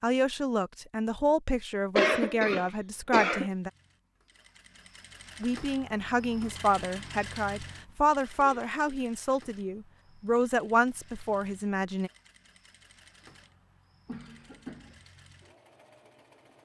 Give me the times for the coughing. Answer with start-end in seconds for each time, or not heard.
1.9-3.5, 8.3-8.8, 14.1-15.1.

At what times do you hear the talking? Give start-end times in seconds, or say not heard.
0.0-3.7, 5.4-12.1.